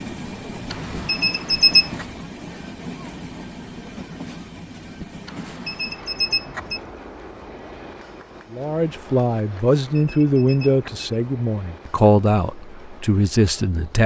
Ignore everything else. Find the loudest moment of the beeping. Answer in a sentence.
The volume of the beeping peaks at 2 seconds.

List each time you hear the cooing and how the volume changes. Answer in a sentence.
The cooing can't be heard in this clip.